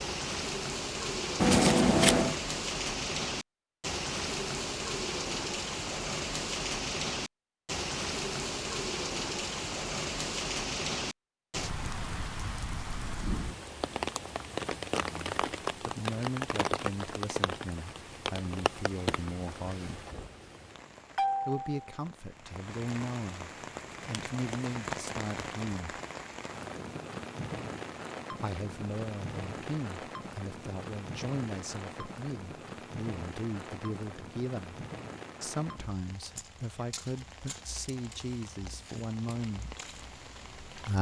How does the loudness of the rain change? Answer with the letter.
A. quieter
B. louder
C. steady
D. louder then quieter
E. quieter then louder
A.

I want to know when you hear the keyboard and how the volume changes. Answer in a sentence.
You can't hear the keyboard here.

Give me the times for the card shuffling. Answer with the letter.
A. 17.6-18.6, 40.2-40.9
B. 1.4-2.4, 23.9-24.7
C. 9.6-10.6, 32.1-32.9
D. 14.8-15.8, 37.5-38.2
B.